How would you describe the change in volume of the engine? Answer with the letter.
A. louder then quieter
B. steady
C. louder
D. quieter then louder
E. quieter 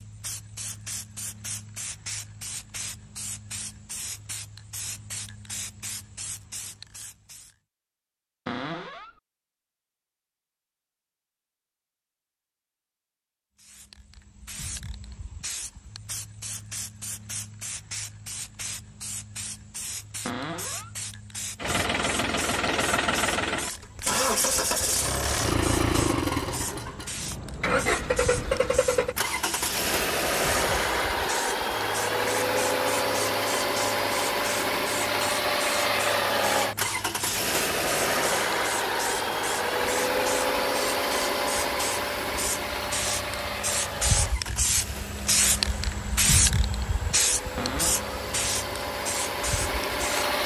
E.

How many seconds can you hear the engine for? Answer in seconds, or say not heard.
29 s.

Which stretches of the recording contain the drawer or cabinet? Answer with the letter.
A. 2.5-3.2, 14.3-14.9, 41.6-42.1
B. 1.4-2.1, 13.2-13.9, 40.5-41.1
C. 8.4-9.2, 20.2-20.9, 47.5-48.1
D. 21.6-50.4
C.